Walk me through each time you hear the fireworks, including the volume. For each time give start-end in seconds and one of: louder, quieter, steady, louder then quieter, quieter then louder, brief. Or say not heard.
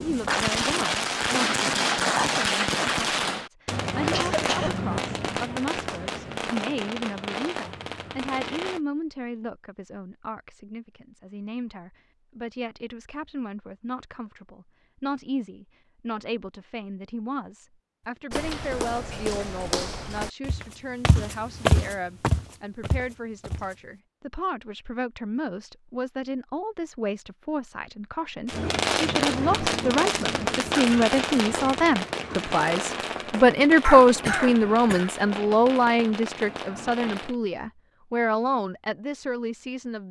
0.0-8.8 quieter
28.4-37.4 quieter.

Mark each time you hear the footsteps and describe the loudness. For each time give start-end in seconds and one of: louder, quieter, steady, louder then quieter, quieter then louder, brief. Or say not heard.
18.3-23.8 louder then quieter.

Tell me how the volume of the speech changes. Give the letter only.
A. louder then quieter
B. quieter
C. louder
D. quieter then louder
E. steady
C.